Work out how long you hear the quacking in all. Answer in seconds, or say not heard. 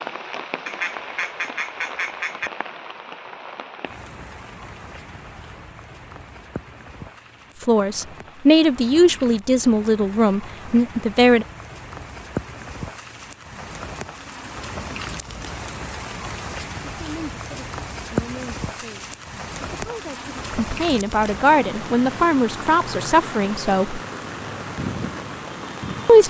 2 s.